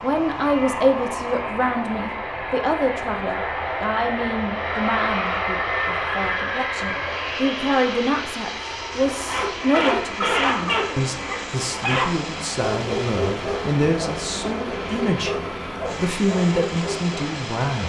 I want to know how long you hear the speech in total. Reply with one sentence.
The speech can be heard for 17 seconds in total.